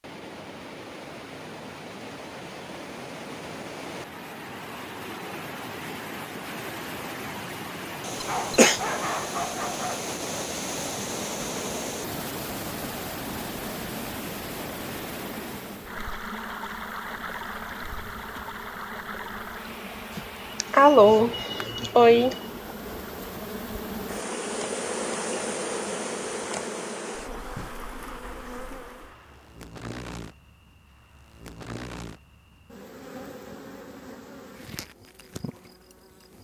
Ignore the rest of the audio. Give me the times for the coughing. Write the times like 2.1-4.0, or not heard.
8.2-8.8, 20.1-22.4.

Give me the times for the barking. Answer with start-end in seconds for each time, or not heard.
8.2-10.1.